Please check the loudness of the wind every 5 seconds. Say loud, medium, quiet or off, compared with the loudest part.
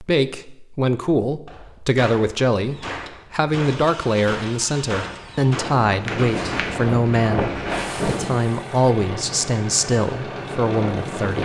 off, loud, loud.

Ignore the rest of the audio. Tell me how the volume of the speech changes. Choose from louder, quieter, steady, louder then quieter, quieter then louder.
steady.